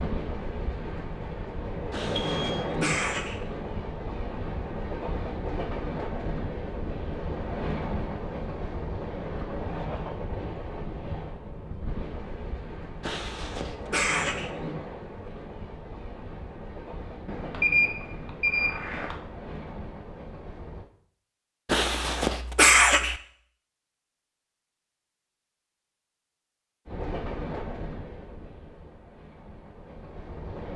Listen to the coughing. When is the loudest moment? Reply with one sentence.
The loudest moment of the coughing is at 23 seconds.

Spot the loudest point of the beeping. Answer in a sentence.
The volume of the beeping peaks at 18 seconds.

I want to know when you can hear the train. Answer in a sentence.
The train can be heard from 0.0 to 20.9 s and from 26.9 to 30.7 s.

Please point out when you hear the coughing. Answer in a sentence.
You can hear the coughing from 1.9 to 3.4 s, from 13.0 to 14.5 s and from 21.6 to 23.1 s.